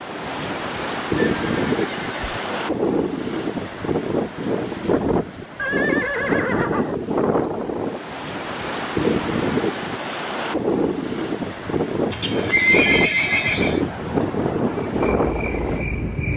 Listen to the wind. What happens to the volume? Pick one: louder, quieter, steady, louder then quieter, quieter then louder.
steady.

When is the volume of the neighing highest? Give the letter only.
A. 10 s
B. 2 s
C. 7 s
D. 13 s
D.